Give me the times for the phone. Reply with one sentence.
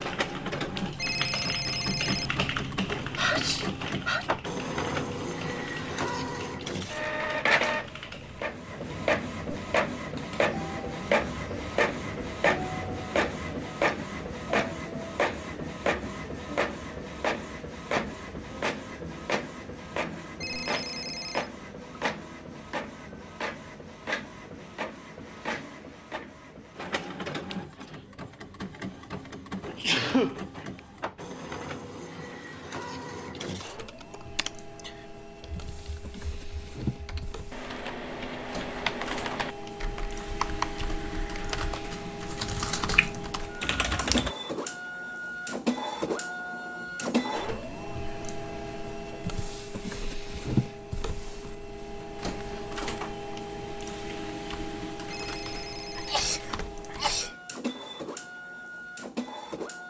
The phone can be heard from 0.9 to 2.4 s, from 20.4 to 21.5 s and from 55.1 to 56.2 s.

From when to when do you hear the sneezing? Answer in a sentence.
The sneezing can be heard from 3.1 to 4.2 s, from 29.6 to 30.8 s and from 56.0 to 57.3 s.